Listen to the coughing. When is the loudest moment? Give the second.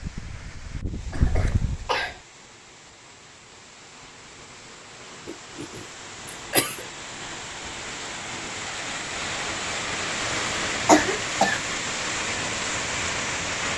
11 s.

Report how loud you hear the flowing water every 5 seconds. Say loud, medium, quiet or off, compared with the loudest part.
quiet, medium, loud.